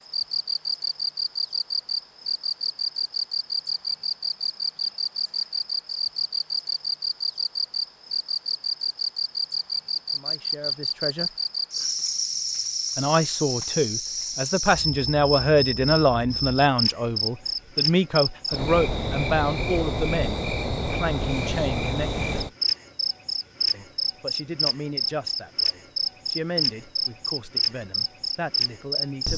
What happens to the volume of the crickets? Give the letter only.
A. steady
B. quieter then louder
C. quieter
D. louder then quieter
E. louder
A.